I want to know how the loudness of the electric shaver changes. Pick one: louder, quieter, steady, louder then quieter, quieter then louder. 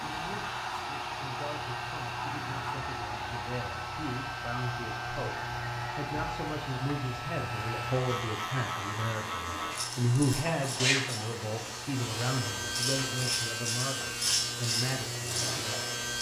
louder.